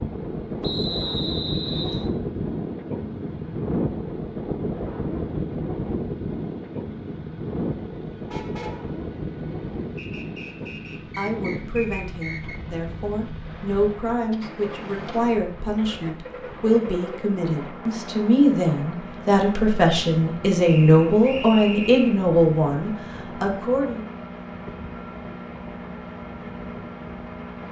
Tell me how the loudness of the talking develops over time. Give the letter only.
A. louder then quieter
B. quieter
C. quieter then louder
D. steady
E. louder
E.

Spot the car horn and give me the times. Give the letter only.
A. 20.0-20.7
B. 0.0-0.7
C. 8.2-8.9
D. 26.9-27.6
C.